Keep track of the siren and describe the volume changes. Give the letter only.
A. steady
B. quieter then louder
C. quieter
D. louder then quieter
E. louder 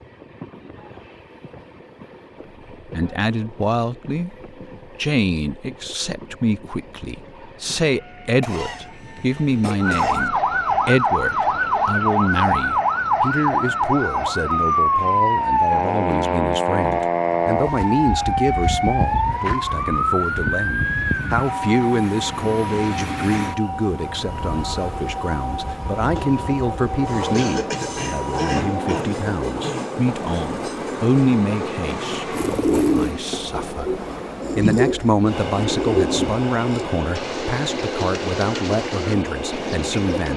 C.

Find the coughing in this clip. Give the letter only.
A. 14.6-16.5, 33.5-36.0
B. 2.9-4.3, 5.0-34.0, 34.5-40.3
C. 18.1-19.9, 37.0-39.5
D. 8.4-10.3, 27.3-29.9
D.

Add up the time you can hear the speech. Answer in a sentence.
The speech can be heard for 36 seconds in total.